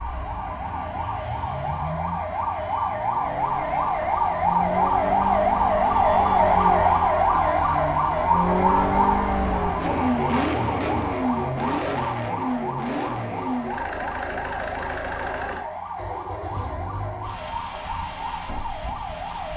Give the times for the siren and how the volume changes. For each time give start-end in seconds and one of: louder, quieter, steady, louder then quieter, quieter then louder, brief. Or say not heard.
0.0-19.5 louder then quieter.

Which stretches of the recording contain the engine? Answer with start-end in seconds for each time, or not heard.
0.1-19.5.